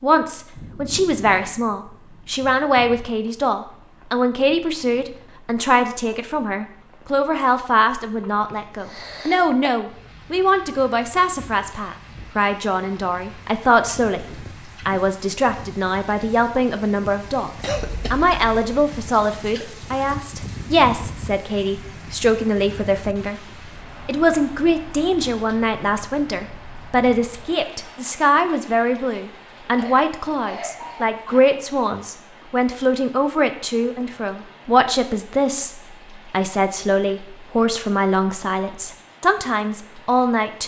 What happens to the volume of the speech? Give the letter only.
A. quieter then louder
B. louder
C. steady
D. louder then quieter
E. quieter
C.